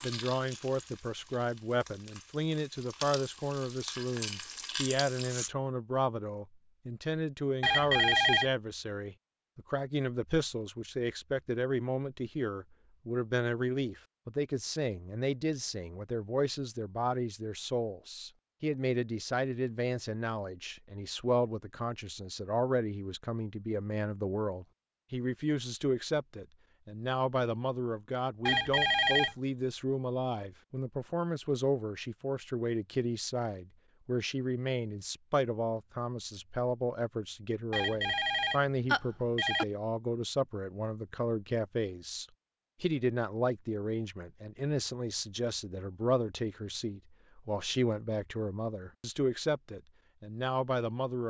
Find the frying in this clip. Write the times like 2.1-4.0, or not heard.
0.0-5.5.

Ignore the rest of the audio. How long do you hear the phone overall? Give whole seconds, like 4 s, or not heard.
4 s.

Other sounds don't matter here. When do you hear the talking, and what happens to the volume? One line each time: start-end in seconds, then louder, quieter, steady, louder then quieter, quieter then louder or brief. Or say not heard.
0.0-51.2 steady.